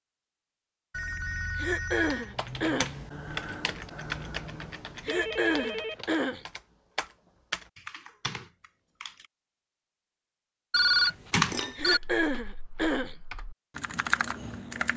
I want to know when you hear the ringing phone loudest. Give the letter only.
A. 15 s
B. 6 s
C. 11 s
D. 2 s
C.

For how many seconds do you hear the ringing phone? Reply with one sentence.
The ringing phone can be heard for 4 seconds in total.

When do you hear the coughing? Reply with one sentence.
You can hear the coughing from 1.6 to 3.0 s, from 5.0 to 6.5 s and from 11.8 to 13.2 s.